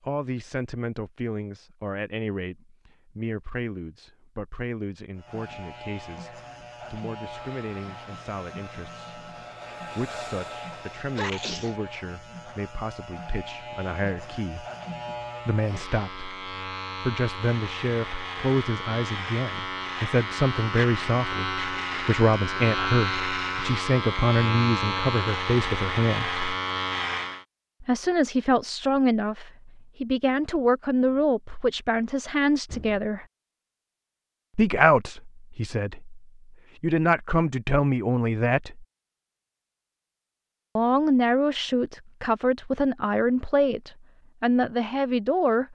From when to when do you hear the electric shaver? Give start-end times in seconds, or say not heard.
5.2-27.4.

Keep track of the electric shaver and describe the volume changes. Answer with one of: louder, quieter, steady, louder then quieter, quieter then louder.
louder.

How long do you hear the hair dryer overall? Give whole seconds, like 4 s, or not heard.
4 s.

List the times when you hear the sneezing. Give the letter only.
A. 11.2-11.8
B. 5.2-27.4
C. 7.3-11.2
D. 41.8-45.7
A.